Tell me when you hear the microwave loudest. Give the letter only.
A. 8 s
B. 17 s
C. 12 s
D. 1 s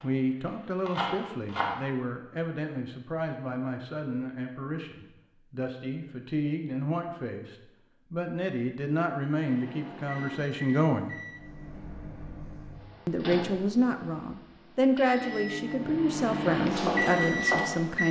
B.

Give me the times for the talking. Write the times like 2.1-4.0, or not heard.
0.0-11.2, 13.1-18.0.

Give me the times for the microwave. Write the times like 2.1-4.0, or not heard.
9.4-18.0.